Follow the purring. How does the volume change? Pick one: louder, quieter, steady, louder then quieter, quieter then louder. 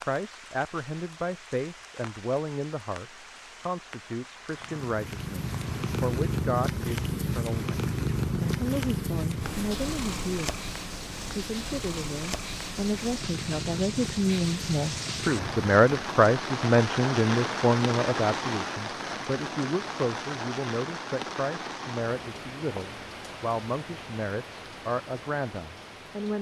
quieter.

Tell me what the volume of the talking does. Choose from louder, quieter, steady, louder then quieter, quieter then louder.
louder then quieter.